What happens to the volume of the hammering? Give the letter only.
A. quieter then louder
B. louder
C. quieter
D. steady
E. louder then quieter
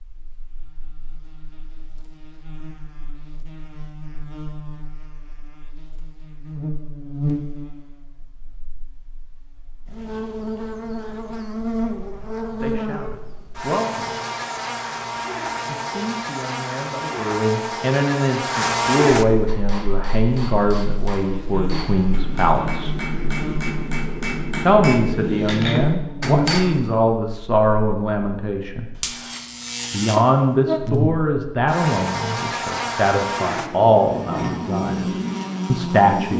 B.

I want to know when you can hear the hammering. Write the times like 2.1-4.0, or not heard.
19.4-26.8.